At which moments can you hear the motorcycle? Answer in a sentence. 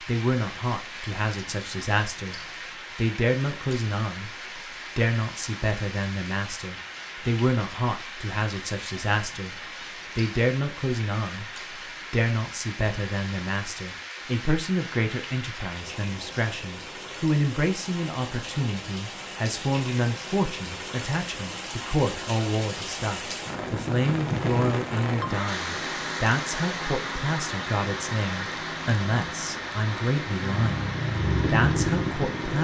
You can hear the motorcycle from 30.4 to 32.5 s.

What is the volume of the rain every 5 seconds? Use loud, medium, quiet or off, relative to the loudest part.
medium, medium, medium, medium, loud, loud, loud.